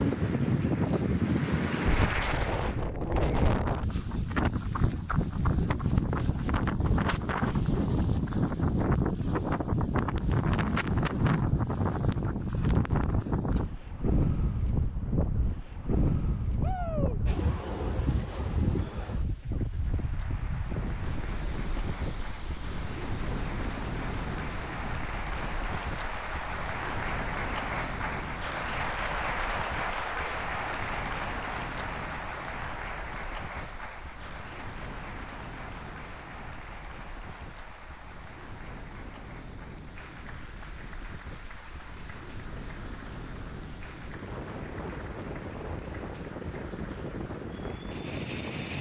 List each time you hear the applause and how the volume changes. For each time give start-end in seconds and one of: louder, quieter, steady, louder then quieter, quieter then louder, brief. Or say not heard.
0.0-3.0 brief
19.6-48.6 louder then quieter.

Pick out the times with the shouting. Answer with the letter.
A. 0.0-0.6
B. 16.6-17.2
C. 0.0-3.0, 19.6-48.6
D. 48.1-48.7
B.